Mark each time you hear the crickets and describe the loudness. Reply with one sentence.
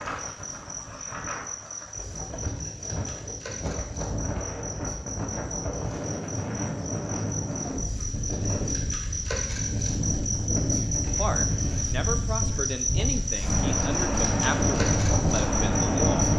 You can hear the crickets from 0.0 to 16.3 s, getting louder.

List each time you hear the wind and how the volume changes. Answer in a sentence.
You can hear the wind from 0.0 to 16.3 s, getting louder.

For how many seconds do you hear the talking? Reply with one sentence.
You can hear the talking for 5 seconds altogether.